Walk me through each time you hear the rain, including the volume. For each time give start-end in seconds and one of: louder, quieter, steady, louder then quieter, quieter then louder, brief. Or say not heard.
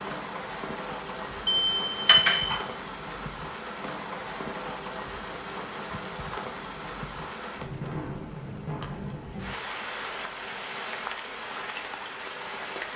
0.0-12.9 steady.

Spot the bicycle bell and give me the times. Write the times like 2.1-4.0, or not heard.
1.4-2.6.